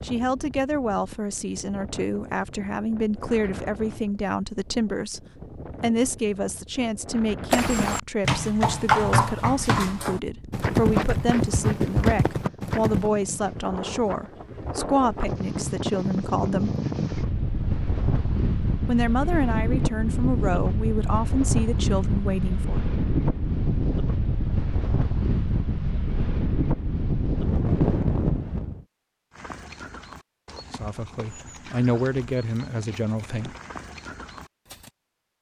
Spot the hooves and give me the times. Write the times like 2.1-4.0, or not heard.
7.5-13.1, 29.3-34.9.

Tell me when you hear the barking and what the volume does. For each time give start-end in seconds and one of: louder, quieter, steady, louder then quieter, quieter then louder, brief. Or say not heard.
not heard.